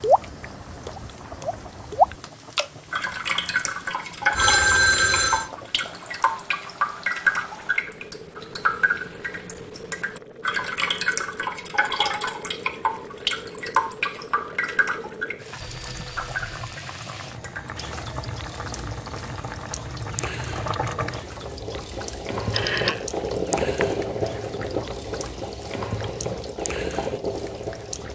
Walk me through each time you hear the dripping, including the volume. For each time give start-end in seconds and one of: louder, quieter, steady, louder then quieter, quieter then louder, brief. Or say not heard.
0.0-28.0 quieter.